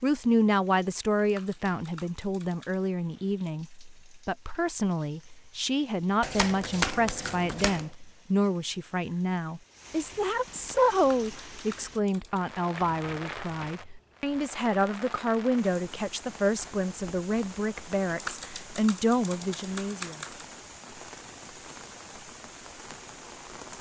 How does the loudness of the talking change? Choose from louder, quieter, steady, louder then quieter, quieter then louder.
steady.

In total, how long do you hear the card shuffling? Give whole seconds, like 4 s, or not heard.
3 s.